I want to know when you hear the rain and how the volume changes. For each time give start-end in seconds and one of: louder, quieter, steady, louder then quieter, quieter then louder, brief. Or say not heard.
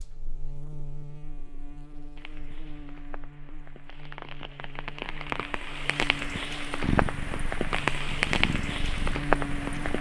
2.1-9.9 louder.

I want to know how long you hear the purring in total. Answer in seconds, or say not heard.
3 s.